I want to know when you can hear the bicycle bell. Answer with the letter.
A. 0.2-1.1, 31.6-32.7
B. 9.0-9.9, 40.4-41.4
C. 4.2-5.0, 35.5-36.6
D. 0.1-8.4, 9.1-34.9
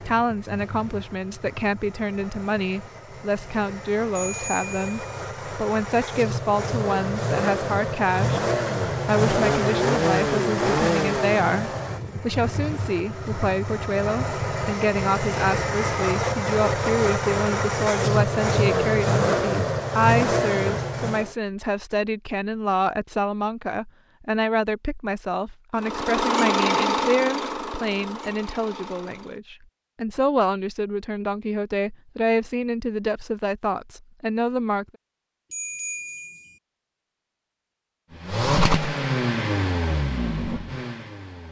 C.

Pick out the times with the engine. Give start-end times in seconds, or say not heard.
0.0-21.4, 25.8-29.4, 38.1-41.4.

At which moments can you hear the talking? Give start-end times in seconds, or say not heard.
0.1-8.4, 9.1-34.9.